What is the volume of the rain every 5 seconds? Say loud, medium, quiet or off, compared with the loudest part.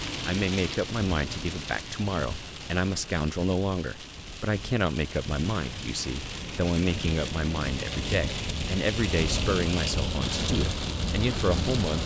medium, loud, loud.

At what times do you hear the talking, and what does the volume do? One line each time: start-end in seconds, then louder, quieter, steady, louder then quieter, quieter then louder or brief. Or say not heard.
0.2-12.0 steady.